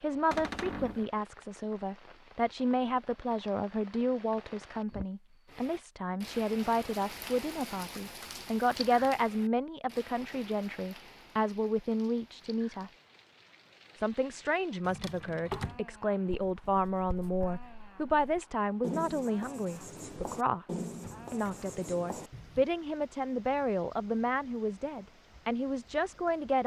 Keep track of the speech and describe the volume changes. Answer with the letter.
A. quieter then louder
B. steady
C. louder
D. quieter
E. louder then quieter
B.